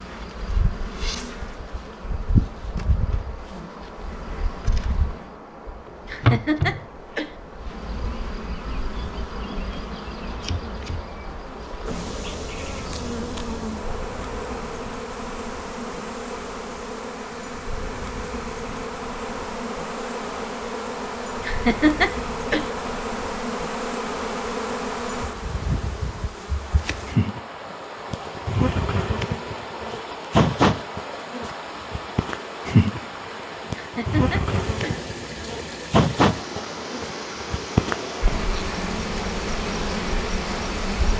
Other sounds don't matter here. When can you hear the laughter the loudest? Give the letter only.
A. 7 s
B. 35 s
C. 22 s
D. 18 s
C.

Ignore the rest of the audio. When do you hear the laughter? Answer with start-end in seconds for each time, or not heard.
6.0-7.3, 21.4-22.6, 33.8-35.0.